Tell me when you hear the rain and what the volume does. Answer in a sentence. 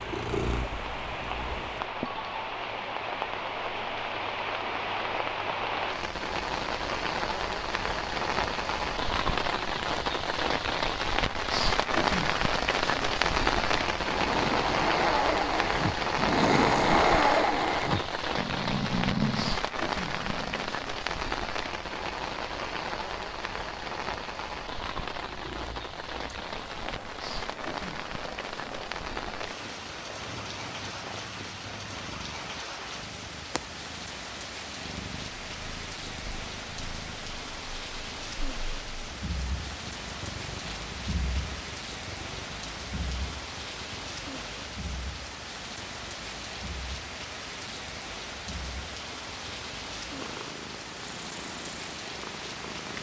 The rain can be heard from 0.0 to 52.9 s, getting quieter.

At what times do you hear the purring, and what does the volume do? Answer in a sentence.
The purring can be heard briefly from 0.0 to 1.9 s; and from 25.1 to 52.9 s, at a steady volume.